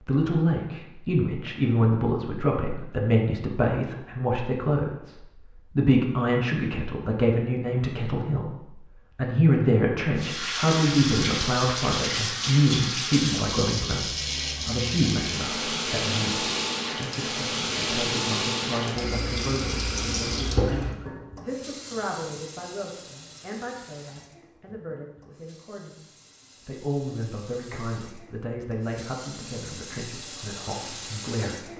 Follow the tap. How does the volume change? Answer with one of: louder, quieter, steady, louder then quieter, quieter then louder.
quieter then louder.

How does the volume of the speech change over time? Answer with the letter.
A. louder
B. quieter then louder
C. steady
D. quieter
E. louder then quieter
D.